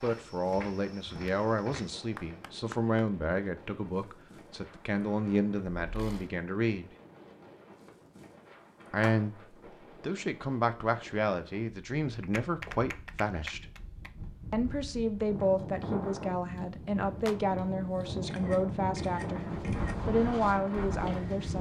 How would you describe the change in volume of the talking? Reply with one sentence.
The loudness of the talking stays about the same.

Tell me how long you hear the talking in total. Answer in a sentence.
The talking can be heard for 19 seconds in total.